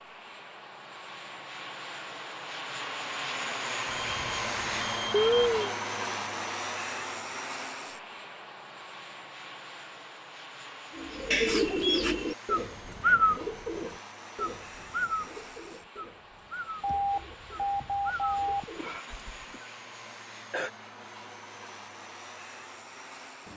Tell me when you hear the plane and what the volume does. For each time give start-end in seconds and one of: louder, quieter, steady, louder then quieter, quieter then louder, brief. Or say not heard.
0.0-23.5 quieter.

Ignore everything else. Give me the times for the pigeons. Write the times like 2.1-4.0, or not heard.
10.9-19.4.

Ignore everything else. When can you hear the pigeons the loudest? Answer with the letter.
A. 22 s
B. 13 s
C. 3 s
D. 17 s
B.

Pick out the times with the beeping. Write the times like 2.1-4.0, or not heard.
3.9-5.5, 11.3-12.0, 16.8-18.6.